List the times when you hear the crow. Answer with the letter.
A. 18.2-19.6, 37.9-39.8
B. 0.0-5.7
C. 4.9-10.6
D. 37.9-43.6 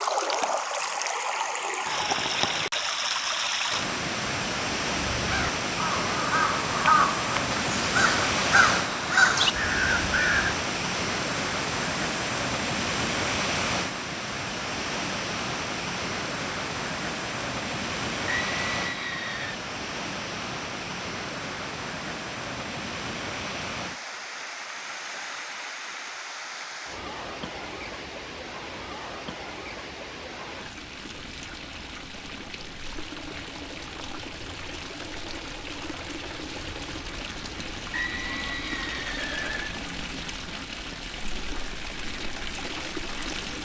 C.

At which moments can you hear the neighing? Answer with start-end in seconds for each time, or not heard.
18.2-19.6, 37.9-39.8.